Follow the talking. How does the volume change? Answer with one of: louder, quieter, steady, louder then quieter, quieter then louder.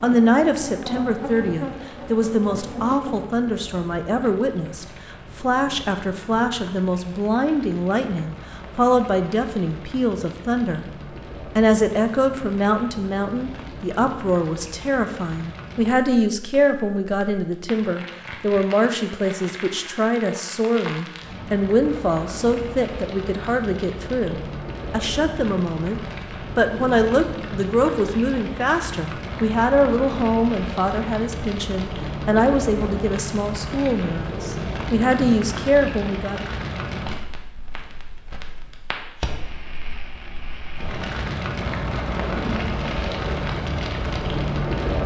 steady.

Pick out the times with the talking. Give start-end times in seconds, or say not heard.
0.0-10.9, 11.6-36.5.